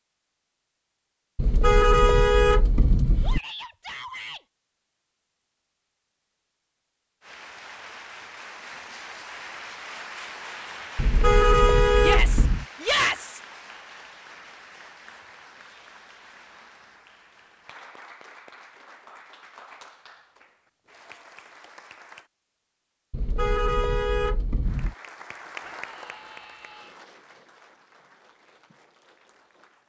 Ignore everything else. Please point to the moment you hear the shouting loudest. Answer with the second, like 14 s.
13 s.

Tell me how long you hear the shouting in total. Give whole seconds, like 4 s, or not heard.
4 s.